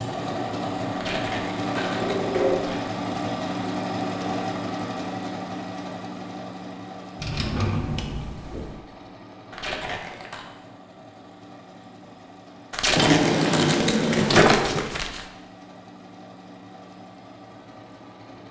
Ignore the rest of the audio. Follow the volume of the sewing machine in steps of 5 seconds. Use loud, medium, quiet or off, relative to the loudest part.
loud, medium, quiet, quiet.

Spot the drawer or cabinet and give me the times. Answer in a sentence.
You can hear the drawer or cabinet from 1.8 to 2.6 s, from 7.2 to 8.8 s and from 12.9 to 14.8 s.